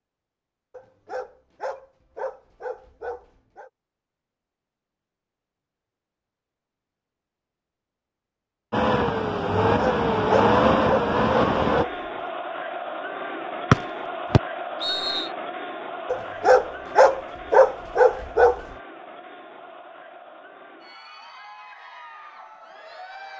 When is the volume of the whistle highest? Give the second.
14 s.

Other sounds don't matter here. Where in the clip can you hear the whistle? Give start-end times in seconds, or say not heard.
13.7-15.3.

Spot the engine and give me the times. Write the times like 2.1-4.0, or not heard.
8.7-11.8.